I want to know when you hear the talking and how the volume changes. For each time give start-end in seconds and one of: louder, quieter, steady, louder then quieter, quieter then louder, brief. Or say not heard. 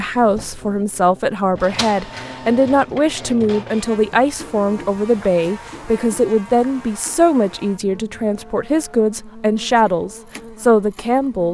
0.0-11.4 steady.